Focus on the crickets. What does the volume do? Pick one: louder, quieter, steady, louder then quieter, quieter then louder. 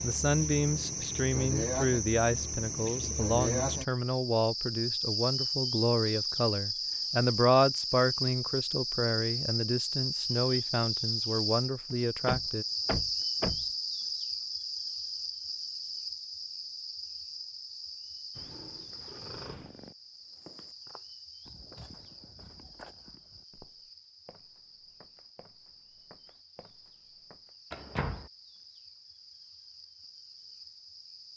quieter.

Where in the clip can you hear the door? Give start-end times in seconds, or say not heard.
11.9-13.7, 27.7-28.3.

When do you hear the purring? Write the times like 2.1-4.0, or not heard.
18.4-19.9.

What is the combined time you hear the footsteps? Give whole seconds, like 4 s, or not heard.
7 s.